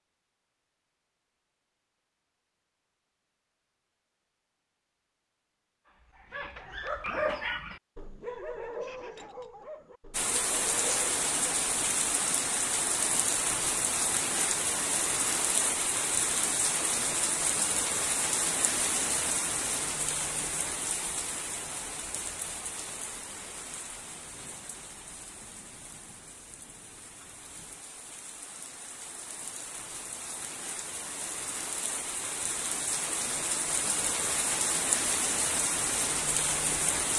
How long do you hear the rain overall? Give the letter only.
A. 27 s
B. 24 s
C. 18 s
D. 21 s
A.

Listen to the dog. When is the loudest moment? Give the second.
7 s.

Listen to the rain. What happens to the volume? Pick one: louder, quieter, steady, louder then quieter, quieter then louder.
quieter then louder.